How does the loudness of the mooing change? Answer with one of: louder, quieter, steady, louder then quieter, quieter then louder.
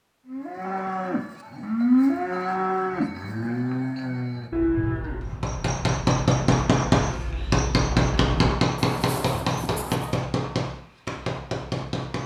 quieter.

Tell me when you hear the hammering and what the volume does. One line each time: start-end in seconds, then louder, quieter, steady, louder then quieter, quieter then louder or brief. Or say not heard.
5.2-12.2 quieter.